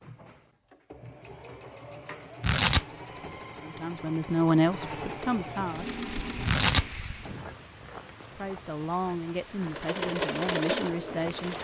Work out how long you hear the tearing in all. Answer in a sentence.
You can hear the tearing for 2 seconds altogether.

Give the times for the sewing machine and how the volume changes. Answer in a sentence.
You can hear the sewing machine from 0.0 to 7.0 s, getting louder; and briefly from 9.7 to 11.5 s.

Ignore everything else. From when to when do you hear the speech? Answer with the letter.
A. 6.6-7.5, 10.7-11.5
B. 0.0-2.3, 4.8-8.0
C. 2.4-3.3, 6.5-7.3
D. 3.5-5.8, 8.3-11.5
D.